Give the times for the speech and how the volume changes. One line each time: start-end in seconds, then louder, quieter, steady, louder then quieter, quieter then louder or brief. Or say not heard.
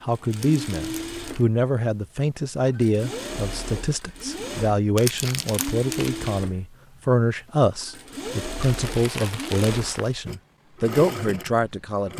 0.0-12.1 steady.